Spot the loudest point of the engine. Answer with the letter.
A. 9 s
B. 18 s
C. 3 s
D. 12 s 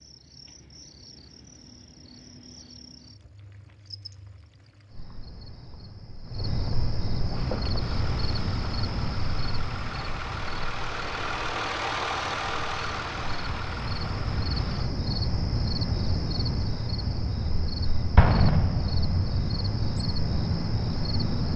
D.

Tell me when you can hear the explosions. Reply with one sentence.
You can hear the explosions from 18.1 to 19.4 s.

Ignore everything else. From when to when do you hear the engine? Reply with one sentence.
You can hear the engine from 7.3 to 14.9 s.